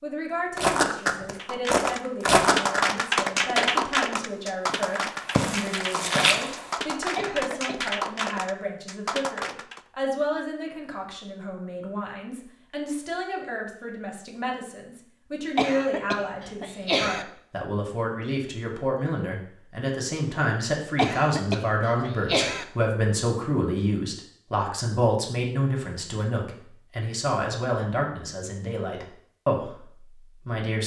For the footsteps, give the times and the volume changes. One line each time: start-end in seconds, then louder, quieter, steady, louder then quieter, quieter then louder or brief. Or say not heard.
0.6-6.7 quieter then louder.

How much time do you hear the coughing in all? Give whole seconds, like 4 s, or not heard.
4 s.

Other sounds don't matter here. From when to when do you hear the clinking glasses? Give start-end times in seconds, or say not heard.
not heard.